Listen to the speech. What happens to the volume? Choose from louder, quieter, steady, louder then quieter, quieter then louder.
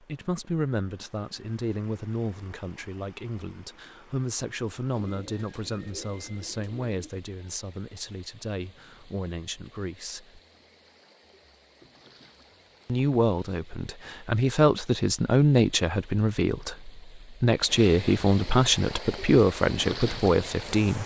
louder.